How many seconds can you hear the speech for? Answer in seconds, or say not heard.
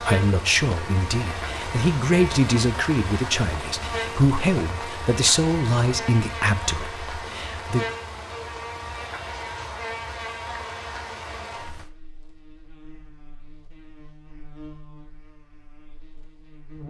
8 s.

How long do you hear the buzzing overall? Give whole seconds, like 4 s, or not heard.
17 s.